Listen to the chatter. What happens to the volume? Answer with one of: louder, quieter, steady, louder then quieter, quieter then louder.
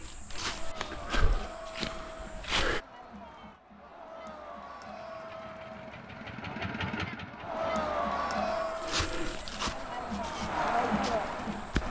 louder.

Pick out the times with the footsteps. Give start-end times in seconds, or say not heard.
0.0-2.8, 8.4-11.8.